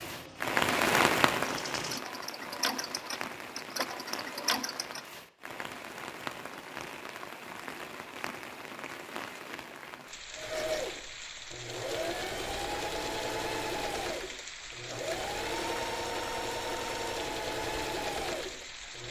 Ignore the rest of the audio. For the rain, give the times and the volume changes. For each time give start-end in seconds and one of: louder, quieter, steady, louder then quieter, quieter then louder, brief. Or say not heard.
0.0-19.0 quieter.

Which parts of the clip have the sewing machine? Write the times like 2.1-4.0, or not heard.
0.0-5.0, 10.3-19.0.